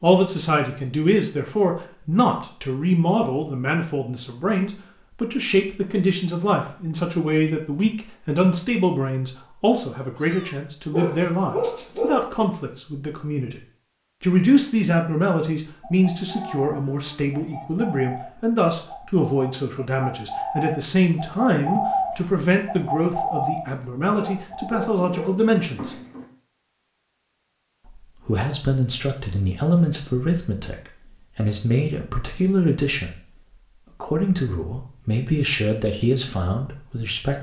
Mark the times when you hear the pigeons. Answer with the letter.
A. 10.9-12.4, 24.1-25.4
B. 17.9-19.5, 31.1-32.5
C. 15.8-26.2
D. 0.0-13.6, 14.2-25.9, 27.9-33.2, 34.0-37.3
C.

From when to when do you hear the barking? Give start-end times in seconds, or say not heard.
10.9-12.4, 24.1-25.4.